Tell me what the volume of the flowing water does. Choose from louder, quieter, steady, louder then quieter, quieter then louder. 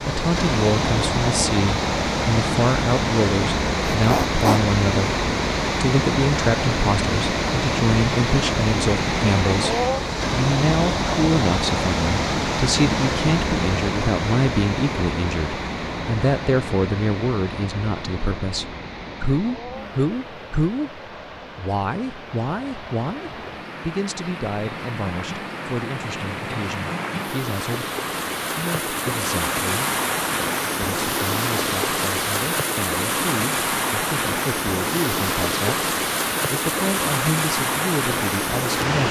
quieter then louder.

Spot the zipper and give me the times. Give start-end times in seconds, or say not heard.
3.9-4.7.